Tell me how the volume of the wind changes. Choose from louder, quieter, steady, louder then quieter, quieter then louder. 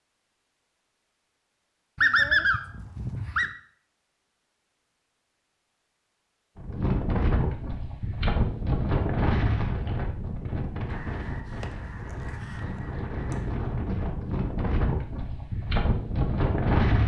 quieter then louder.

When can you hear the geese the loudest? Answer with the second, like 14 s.
2 s.